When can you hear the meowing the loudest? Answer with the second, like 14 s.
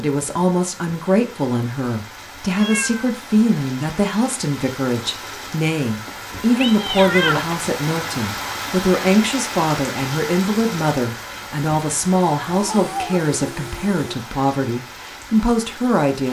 7 s.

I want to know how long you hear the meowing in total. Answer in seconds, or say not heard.
4 s.